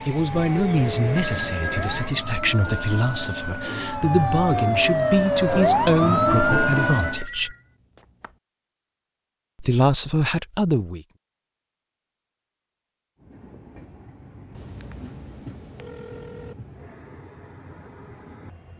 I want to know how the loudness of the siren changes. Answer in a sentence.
The volume of the siren goes up.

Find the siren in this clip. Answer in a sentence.
The siren can be heard from 0.0 to 7.2 s.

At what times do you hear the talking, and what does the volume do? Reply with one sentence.
You can hear the talking from 0.1 to 7.5 s, at a steady volume; and briefly from 9.6 to 11.1 s.